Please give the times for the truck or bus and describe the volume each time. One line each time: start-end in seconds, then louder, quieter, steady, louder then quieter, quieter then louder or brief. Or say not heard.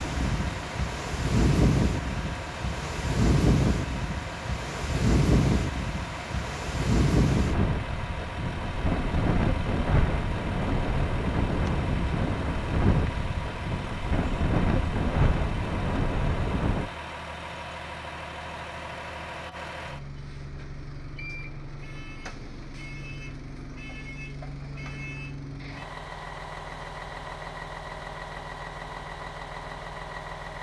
0.0-30.5 steady.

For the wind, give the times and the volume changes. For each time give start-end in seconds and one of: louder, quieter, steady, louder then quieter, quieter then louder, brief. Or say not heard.
0.0-16.9 steady.